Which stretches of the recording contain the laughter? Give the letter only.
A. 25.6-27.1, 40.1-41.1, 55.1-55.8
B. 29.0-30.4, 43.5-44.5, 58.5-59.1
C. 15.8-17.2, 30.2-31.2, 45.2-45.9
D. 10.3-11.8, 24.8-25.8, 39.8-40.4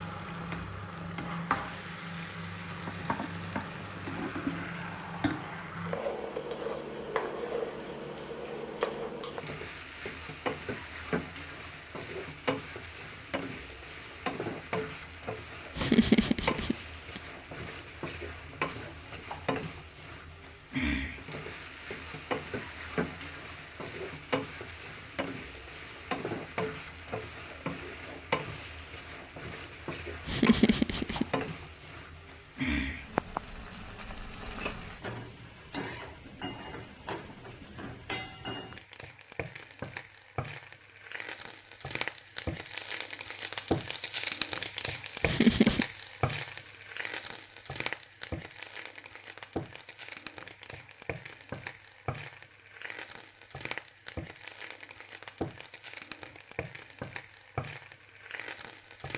C.